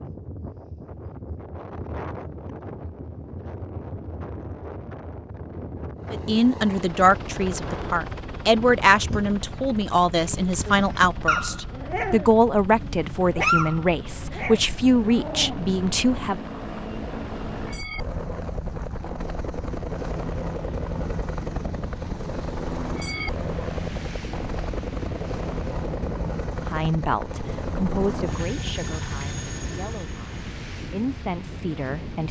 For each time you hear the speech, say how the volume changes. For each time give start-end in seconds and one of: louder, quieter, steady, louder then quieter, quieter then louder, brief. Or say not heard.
6.1-16.4 steady
26.6-32.2 quieter then louder.